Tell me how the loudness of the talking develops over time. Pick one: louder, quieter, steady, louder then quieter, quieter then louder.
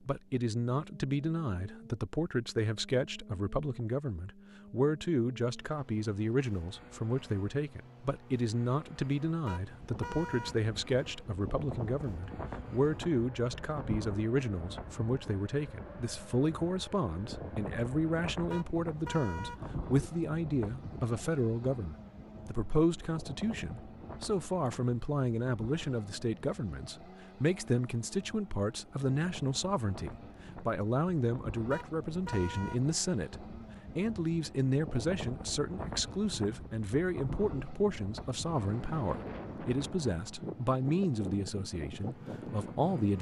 steady.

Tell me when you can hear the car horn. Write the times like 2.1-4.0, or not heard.
9.4-10.6, 18.5-19.6, 31.7-32.8.